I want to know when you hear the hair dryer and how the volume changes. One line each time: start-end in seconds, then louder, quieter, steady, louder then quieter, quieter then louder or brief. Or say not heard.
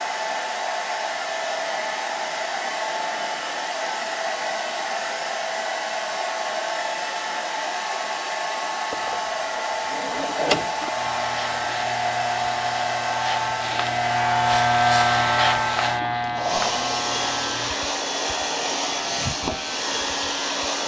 0.0-20.8 steady.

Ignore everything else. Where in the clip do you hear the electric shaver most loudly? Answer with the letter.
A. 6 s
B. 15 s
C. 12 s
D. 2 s
B.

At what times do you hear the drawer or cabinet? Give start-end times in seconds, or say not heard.
8.9-10.9.